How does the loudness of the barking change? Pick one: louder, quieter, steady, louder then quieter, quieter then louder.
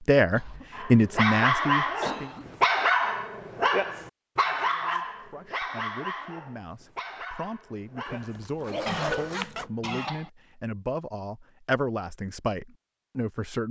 quieter.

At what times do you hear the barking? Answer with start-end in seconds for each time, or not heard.
0.7-9.3.